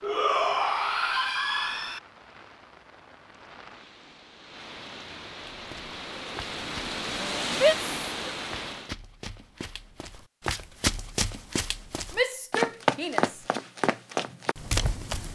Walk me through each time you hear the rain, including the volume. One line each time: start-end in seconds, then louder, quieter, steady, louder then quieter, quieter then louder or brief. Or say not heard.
0.0-8.9 louder.